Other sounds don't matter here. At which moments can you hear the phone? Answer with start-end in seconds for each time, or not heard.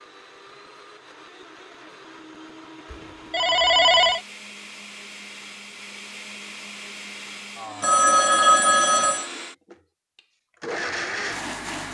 2.9-4.2, 7.8-9.2.